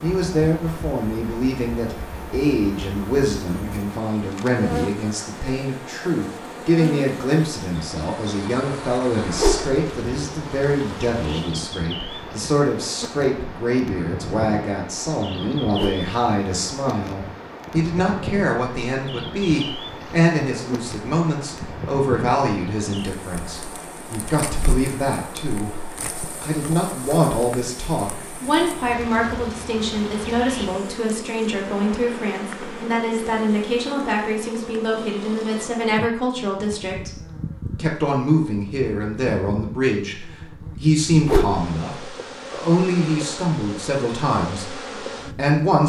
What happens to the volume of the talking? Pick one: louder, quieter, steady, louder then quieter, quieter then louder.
steady.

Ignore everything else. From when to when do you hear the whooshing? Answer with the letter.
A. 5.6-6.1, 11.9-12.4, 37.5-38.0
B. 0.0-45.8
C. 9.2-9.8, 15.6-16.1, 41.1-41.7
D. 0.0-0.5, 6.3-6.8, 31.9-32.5
C.